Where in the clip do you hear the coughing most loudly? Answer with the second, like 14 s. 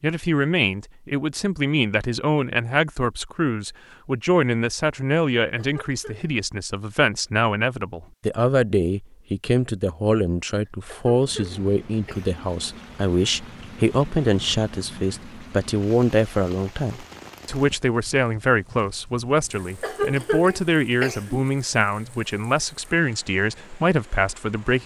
20 s.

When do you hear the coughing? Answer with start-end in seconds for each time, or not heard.
5.5-6.3, 10.7-12.3, 19.8-21.4.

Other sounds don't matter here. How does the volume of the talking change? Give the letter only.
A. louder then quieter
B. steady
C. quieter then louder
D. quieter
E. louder
B.